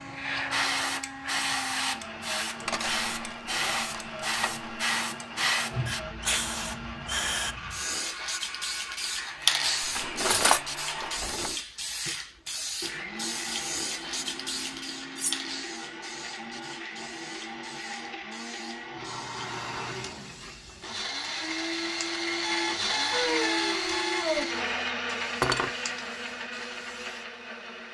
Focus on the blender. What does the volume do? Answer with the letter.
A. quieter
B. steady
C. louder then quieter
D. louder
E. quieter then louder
D.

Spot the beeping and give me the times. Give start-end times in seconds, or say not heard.
22.4-24.4.